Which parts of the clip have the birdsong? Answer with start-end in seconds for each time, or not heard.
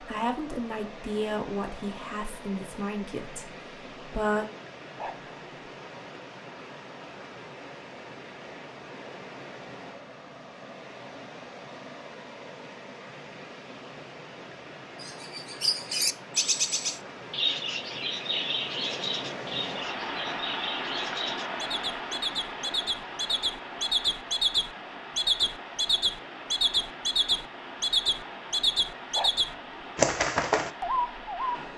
15.0-31.6.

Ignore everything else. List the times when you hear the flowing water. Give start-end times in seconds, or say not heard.
0.0-31.7.